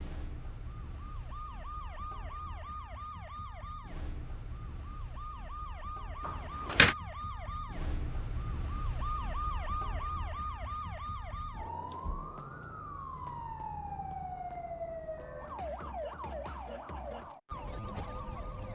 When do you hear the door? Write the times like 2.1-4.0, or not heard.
6.2-7.0.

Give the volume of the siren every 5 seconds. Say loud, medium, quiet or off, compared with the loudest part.
medium, loud, loud, loud.